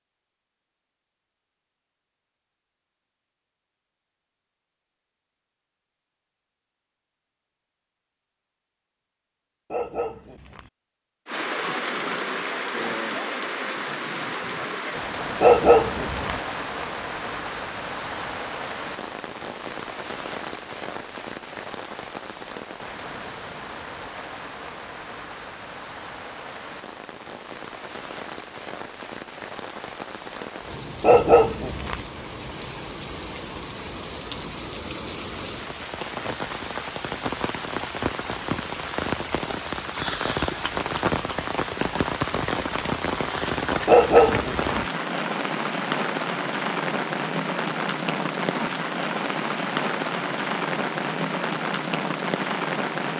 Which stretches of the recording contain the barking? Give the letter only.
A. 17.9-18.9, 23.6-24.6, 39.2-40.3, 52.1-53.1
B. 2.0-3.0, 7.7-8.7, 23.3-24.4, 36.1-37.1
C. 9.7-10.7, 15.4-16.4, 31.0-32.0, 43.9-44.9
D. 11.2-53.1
C.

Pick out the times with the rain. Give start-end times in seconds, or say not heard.
11.2-53.1.